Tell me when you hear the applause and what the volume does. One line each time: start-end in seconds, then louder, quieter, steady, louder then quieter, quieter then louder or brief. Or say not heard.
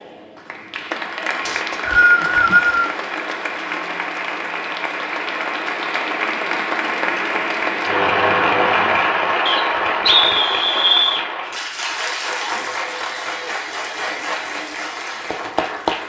0.0-16.0 louder then quieter.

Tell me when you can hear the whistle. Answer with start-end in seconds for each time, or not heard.
1.4-2.9, 9.4-11.2.